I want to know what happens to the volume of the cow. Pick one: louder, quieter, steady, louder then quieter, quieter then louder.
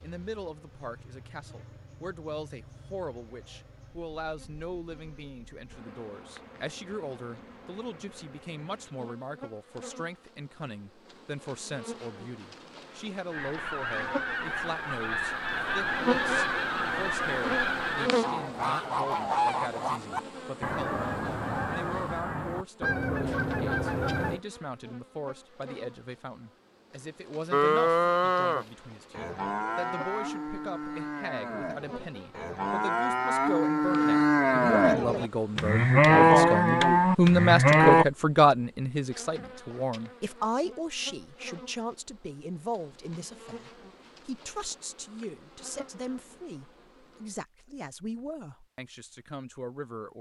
quieter then louder.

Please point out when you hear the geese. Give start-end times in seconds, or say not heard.
13.3-24.4.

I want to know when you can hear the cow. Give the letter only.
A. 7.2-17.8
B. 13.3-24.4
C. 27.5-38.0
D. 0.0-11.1
C.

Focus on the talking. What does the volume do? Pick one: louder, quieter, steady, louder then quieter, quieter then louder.
louder then quieter.